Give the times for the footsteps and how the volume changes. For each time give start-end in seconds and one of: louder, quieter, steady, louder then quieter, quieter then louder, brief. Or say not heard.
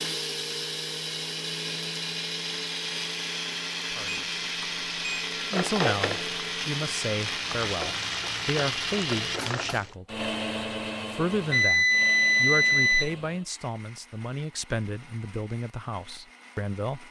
not heard.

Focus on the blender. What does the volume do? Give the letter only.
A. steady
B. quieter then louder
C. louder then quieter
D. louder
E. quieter
E.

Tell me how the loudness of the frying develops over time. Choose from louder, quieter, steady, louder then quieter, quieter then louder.
quieter then louder.